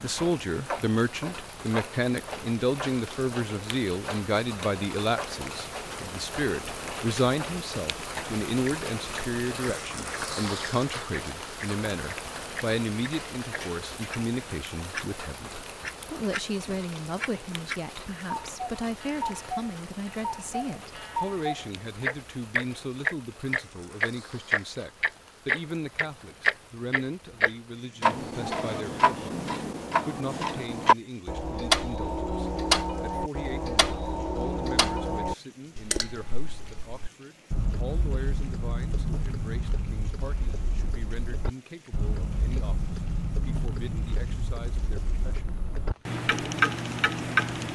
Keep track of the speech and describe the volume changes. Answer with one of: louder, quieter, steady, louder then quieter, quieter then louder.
quieter.